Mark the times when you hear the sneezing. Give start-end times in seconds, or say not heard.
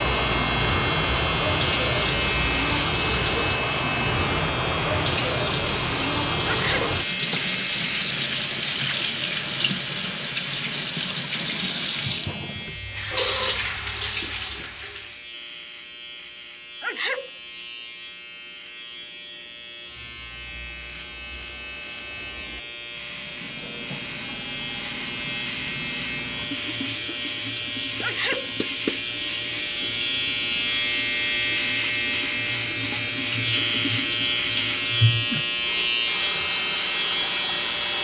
6.5-7.0, 16.8-17.3, 28.0-28.5.